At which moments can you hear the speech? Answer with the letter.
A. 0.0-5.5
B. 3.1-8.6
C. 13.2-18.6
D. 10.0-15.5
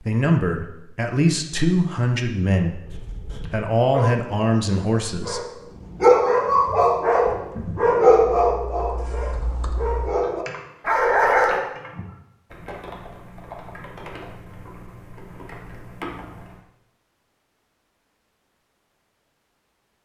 A.